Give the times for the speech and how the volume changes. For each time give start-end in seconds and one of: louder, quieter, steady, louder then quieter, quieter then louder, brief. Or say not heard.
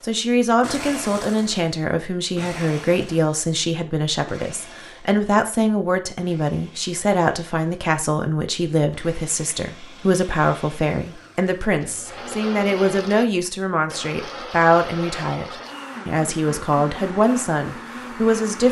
0.0-18.6 steady.